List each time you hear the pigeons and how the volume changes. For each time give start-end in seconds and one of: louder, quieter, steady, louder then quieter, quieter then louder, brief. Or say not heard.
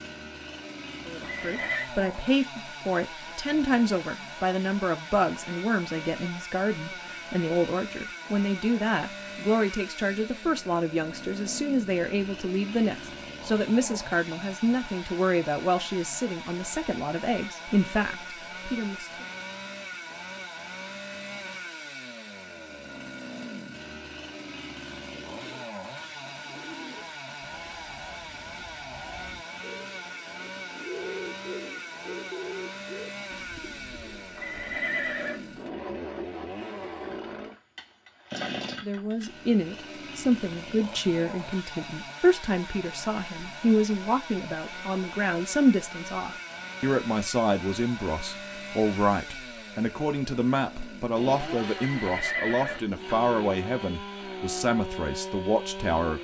25.1-35.6 louder then quieter.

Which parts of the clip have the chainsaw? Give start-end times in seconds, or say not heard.
0.0-56.1.